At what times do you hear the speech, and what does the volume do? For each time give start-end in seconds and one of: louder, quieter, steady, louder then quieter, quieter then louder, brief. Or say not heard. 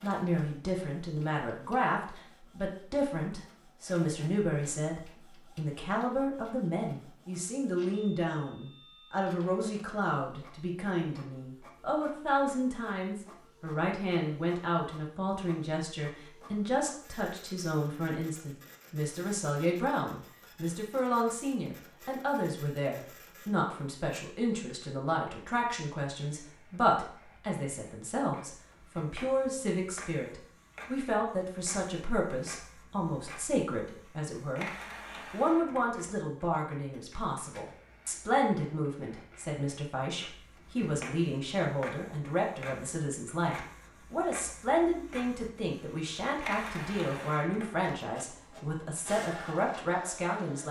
0.0-50.6 steady.